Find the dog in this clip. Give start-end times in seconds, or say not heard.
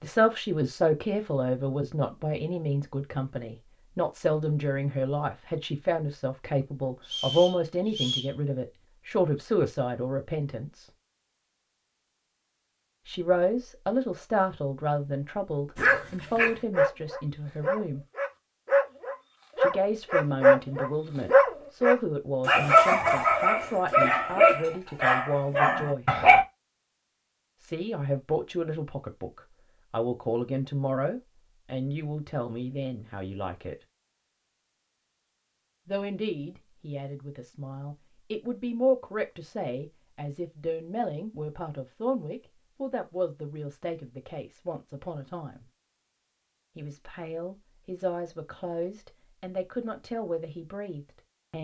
15.8-26.4.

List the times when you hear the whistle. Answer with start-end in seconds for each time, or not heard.
7.0-8.3.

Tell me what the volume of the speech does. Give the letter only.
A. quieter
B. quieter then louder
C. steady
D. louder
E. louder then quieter
A.